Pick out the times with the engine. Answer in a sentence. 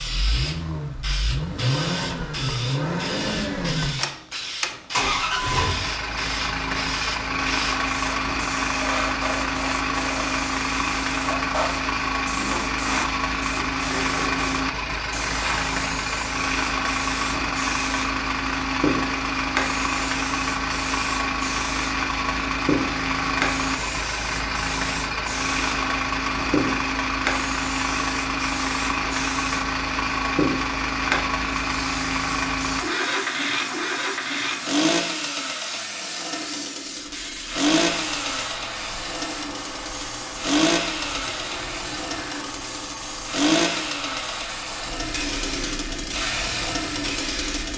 You can hear the engine from 0.0 to 47.7 s.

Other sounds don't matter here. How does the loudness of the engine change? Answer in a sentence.
The loudness of the engine stays about the same.